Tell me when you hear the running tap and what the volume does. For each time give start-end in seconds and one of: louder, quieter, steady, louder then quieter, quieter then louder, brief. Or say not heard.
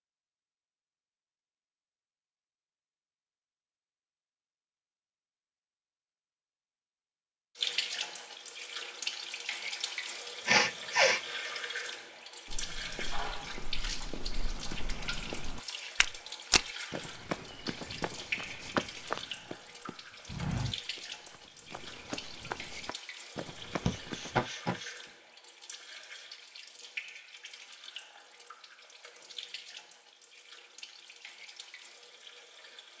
7.5-32.9 quieter.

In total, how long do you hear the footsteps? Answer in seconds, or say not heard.
12 s.